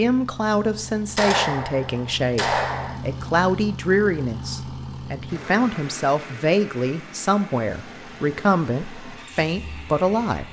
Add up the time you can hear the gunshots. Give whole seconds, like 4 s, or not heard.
2 s.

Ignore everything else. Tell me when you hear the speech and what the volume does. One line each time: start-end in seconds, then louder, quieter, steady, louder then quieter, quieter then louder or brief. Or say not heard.
0.0-10.4 steady.